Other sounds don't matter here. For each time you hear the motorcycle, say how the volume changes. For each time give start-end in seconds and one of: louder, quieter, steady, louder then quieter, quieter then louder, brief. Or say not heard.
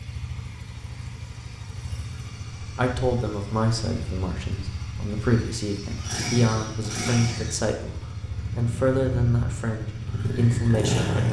0.0-11.2 louder.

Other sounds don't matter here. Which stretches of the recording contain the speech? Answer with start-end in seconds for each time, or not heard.
2.6-11.2.